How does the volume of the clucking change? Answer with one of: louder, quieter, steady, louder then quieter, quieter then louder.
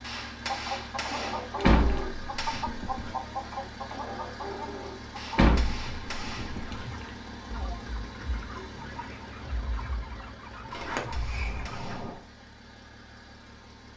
quieter.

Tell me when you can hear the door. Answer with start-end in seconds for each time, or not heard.
1.6-3.1, 5.3-6.8, 10.7-12.2.